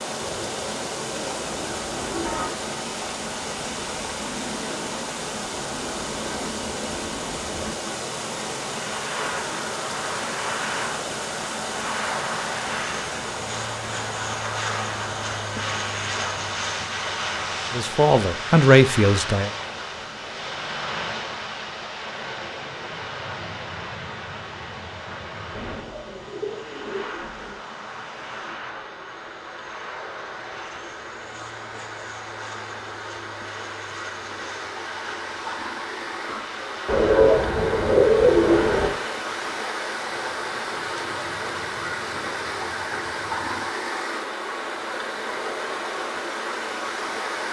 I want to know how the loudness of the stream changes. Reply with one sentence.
The loudness of the stream goes down, then up.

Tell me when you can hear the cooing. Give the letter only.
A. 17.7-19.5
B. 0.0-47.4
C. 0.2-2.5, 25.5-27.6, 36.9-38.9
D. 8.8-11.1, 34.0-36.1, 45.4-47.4
C.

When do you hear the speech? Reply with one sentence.
You can hear the speech from 17.7 to 19.5 s.